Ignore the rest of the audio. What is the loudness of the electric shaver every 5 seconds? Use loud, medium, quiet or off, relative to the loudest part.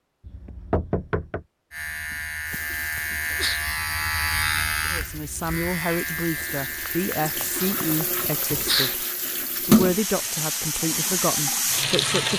loud, medium, off.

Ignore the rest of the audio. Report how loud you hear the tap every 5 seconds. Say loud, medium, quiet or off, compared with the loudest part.
quiet, loud, loud.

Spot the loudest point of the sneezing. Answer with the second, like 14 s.
9 s.